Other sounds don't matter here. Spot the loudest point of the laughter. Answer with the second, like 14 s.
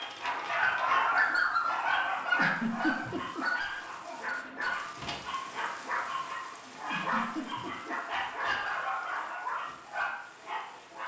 3 s.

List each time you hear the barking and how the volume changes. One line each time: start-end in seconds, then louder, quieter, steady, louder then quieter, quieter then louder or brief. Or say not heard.
0.0-11.0 quieter.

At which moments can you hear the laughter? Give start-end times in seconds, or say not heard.
2.4-3.5, 6.9-8.0.